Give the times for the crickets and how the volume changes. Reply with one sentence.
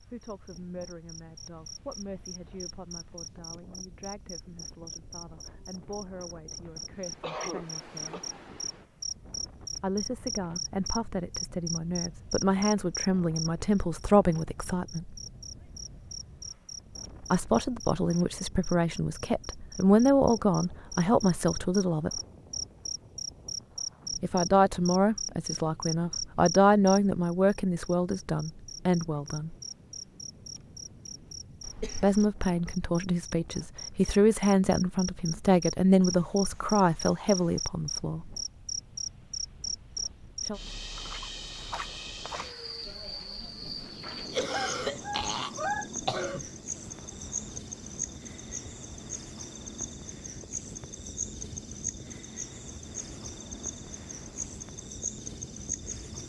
The crickets can be heard from 0.2 to 56.2 s, at a steady volume.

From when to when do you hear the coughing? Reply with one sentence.
The coughing can be heard from 6.7 to 8.2 s, from 31.6 to 32.3 s and from 44.3 to 46.5 s.